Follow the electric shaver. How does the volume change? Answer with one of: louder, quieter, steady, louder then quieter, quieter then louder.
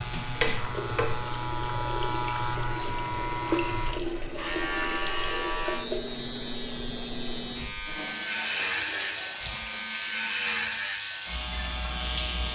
steady.